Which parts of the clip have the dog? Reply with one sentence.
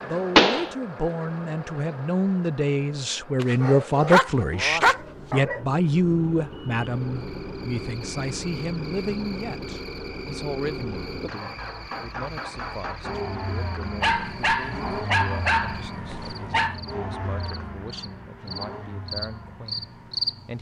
You can hear the dog from 3.4 to 5.6 s and from 14.0 to 16.8 s.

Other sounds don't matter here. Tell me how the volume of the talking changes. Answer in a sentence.
The volume of the talking goes down.